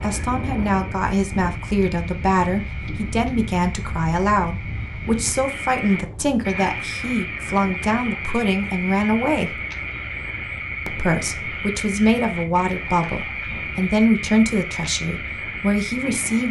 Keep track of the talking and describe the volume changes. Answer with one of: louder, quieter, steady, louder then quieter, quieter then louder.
steady.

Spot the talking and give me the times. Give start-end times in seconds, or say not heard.
0.0-9.6, 10.8-16.4.